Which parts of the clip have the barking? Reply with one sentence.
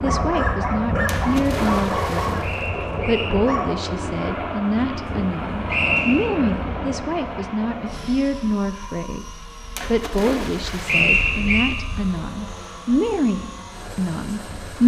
You can hear the barking from 0.0 to 3.7 s.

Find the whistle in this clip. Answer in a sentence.
You can hear the whistle from 2.4 to 3.3 s, from 5.7 to 6.3 s and from 10.8 to 11.7 s.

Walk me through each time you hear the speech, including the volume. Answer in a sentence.
You can hear the speech from 0.0 to 14.8 s, at a steady volume.